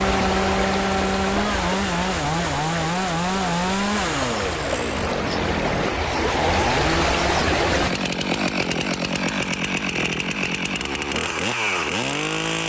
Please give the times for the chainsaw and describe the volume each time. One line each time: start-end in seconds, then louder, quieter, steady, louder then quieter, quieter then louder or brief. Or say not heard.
0.0-12.6 steady.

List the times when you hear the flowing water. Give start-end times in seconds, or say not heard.
0.0-7.9.